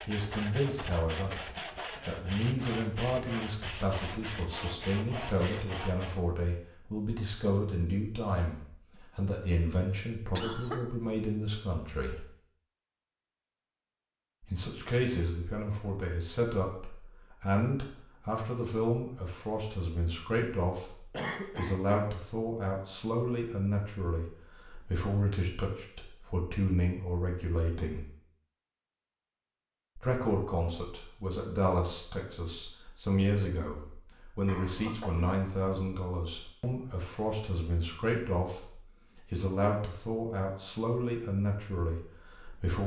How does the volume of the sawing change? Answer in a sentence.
The loudness of the sawing stays about the same.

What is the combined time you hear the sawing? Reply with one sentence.
The sawing can be heard for 6 seconds in total.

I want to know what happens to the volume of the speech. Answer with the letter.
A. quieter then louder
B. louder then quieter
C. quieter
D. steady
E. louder
D.